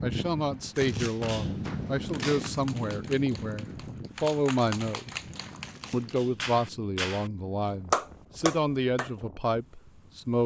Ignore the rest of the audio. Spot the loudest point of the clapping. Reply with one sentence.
The loudest moment of the clapping is at 8 seconds.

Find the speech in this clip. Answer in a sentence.
The speech can be heard from 0.0 to 5.2 s and from 5.9 to 10.4 s.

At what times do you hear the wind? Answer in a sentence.
The wind can be heard from 0.0 to 10.4 s.